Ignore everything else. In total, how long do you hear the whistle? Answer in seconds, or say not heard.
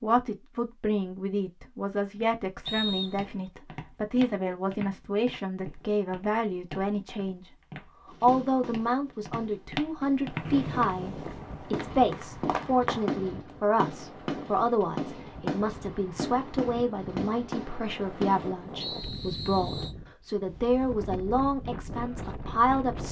3 s.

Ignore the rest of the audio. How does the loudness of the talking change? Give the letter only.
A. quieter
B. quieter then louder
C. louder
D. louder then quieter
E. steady
E.